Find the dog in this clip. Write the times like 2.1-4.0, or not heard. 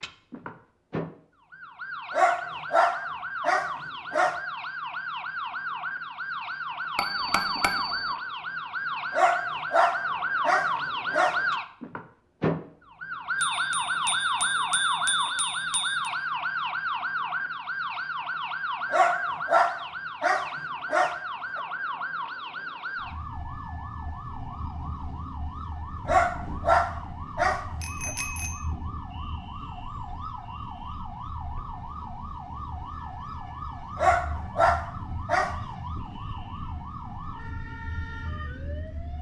2.1-4.4, 9.1-11.4, 18.9-21.6, 26.1-28.1, 34.0-35.5.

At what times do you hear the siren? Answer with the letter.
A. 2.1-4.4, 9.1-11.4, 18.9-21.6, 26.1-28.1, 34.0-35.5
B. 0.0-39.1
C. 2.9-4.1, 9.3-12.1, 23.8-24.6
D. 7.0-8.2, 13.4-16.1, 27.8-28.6
B.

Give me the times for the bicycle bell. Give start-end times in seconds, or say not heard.
7.0-8.2, 13.4-16.1, 27.8-28.6.